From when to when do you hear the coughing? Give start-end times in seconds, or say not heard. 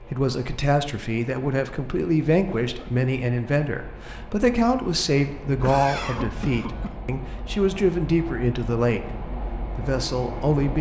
2.5-3.0, 5.5-7.0.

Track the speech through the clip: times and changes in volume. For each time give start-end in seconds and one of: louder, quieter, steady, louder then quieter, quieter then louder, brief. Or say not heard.
0.0-10.7 steady.